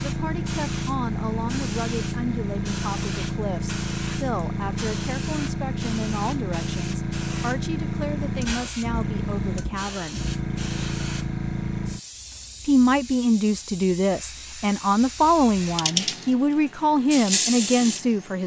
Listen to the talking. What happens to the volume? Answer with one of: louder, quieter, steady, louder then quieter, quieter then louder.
louder.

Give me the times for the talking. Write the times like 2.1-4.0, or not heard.
0.0-10.2, 12.7-18.4.